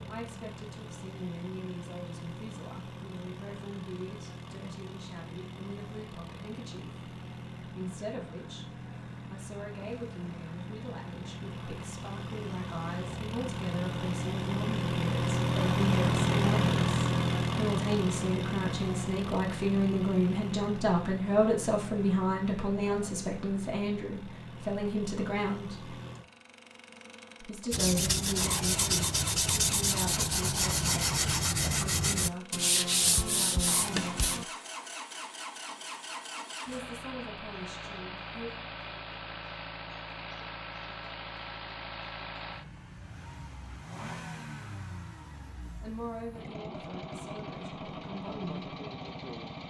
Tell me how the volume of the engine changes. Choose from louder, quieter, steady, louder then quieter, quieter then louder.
louder then quieter.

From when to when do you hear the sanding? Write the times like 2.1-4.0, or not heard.
27.7-34.5.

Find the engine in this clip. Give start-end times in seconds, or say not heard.
0.0-49.6.